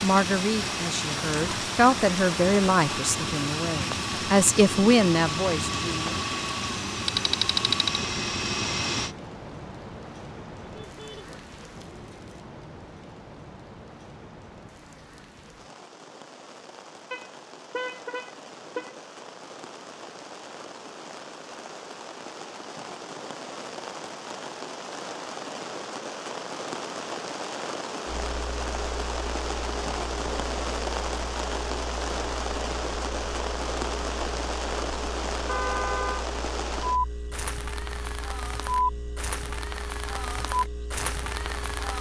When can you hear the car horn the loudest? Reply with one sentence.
The loudest moment of the car horn is at 36 seconds.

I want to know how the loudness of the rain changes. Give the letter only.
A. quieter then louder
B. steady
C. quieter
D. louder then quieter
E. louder
A.